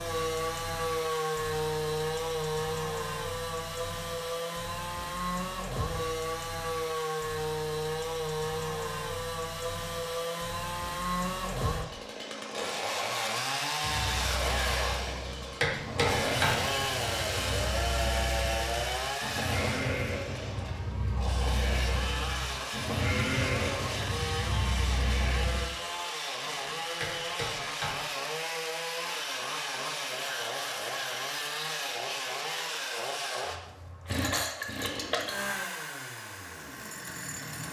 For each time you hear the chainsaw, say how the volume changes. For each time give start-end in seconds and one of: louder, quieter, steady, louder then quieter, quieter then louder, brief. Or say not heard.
0.0-37.6 steady.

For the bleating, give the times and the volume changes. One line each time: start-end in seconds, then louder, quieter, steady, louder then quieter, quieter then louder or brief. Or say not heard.
13.8-25.7 louder.